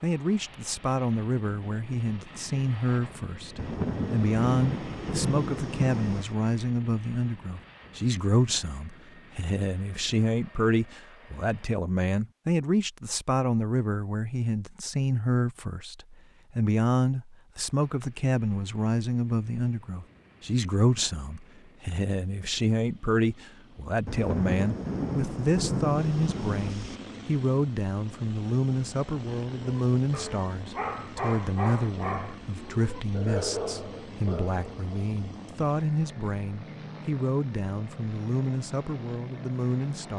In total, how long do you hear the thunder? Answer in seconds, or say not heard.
6 s.